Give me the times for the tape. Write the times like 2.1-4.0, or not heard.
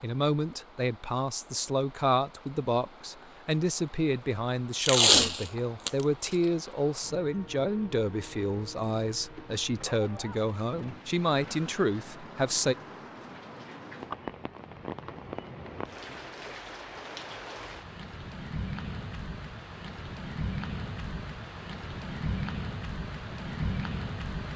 4.8-5.9.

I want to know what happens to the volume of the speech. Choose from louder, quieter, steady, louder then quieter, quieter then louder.
steady.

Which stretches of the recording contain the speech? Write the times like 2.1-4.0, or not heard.
0.0-12.8.